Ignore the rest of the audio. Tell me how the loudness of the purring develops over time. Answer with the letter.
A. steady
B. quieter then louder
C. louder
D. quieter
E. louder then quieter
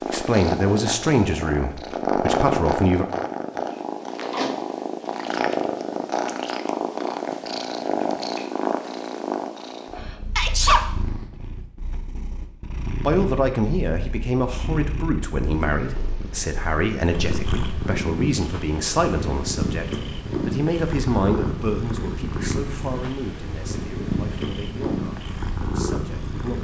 B.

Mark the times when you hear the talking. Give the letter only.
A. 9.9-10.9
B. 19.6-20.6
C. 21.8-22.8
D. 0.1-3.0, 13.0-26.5
D.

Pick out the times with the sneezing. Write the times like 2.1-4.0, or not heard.
9.9-10.9.